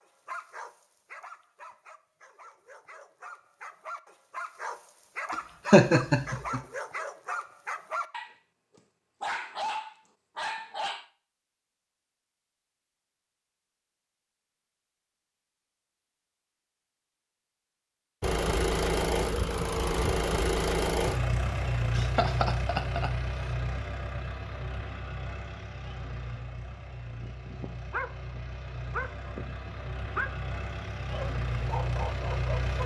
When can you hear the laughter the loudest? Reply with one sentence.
The loudest moment of the laughter is at 6 seconds.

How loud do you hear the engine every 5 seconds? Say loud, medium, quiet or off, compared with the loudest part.
off, off, off, loud, loud, quiet, medium.